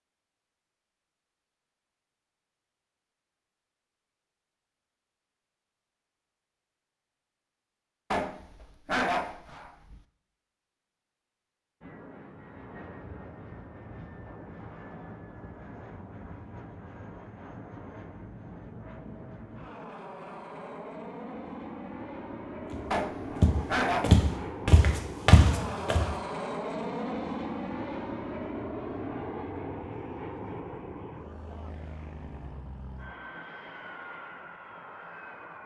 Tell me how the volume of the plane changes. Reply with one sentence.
The loudness of the plane goes up, then down.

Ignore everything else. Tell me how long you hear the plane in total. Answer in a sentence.
You can hear the plane for 24 seconds altogether.